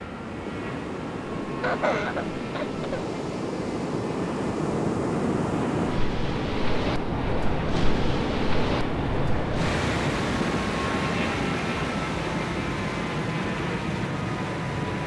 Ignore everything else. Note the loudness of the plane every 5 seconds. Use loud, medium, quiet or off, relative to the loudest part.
medium, loud, loud.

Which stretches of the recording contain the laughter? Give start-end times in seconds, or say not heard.
1.4-3.0.